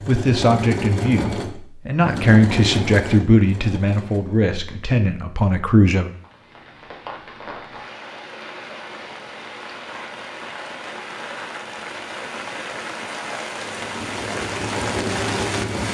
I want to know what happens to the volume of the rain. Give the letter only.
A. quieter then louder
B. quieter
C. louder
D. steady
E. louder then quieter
C.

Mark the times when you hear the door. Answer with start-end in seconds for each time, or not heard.
not heard.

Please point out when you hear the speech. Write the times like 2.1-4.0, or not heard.
0.1-6.1.